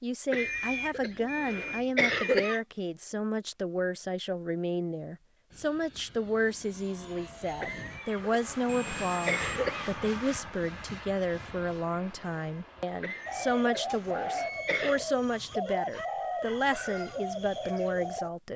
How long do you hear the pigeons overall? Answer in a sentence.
You can hear the pigeons for 5 seconds altogether.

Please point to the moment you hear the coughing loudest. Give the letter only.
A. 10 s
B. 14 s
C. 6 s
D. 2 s
D.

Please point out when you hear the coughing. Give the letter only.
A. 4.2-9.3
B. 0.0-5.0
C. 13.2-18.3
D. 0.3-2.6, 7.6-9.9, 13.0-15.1
D.